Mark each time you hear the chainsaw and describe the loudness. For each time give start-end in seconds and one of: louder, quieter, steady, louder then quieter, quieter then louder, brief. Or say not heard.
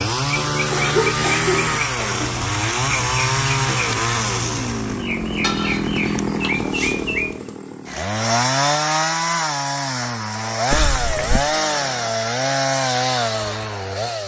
0.0-14.2 steady.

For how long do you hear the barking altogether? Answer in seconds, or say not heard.
not heard.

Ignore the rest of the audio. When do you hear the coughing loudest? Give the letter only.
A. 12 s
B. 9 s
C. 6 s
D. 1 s
D.